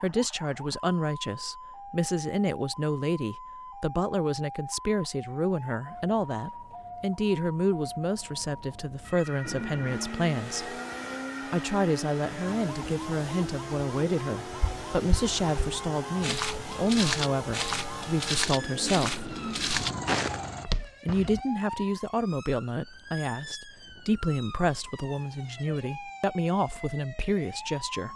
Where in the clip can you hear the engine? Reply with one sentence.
You can hear the engine from 9.4 to 20.6 s.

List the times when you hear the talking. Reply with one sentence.
You can hear the talking from 0.0 to 10.7 s, from 11.5 to 19.3 s and from 21.1 to 28.1 s.